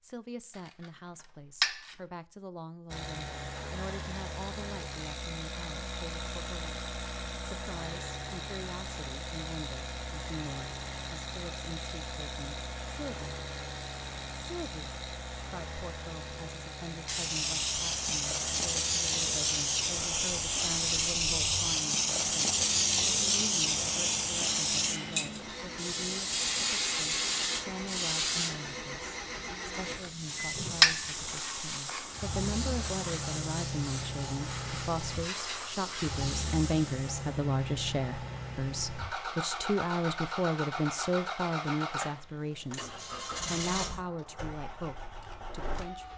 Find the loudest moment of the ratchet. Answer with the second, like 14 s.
31 s.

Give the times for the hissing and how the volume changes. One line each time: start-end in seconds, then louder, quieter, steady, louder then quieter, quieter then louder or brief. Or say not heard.
17.1-37.2 quieter.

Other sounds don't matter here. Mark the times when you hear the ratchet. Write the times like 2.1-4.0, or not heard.
0.5-2.0, 29.9-32.2.